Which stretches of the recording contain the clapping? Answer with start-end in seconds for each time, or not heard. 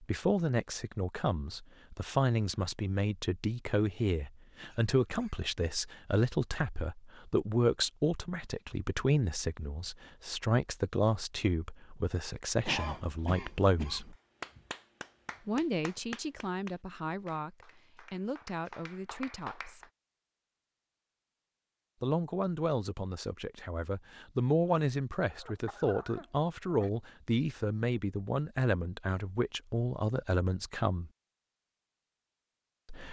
14.4-19.9.